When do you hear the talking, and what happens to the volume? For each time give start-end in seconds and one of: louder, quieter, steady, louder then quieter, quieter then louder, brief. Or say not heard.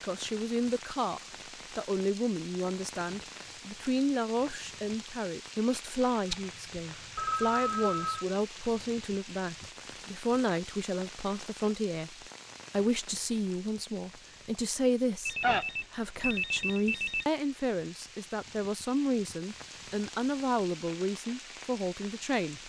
0.0-22.6 steady.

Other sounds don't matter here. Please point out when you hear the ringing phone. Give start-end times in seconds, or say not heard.
6.3-8.2, 15.2-17.2.